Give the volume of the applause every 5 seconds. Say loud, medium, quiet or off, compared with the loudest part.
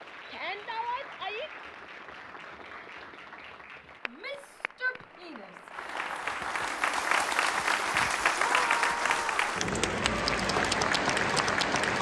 quiet, loud, loud.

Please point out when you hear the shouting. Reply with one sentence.
You can hear the shouting from 0.3 to 1.5 s, from 4.0 to 5.7 s and from 8.3 to 9.5 s.